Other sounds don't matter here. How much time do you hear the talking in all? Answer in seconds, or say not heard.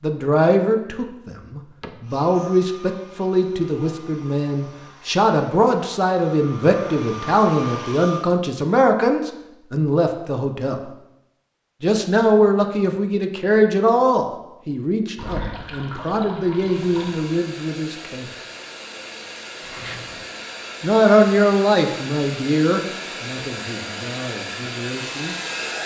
22 s.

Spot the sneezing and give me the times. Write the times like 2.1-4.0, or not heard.
not heard.